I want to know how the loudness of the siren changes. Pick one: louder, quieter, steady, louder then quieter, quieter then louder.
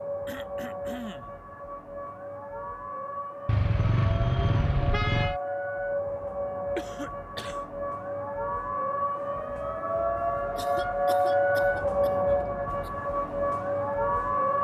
louder.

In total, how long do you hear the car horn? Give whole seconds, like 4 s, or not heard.
2 s.